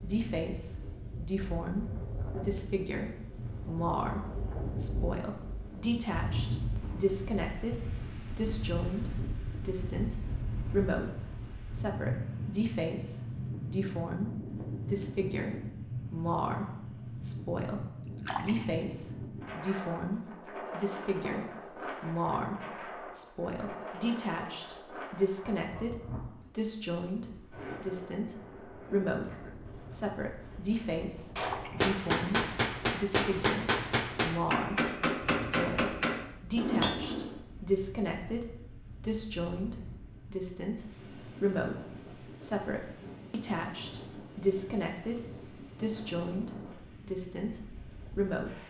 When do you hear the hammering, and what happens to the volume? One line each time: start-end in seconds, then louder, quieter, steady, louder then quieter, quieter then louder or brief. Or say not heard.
31.4-37.4 steady.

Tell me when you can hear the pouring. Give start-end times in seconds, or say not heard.
18.1-18.7, 31.4-31.9.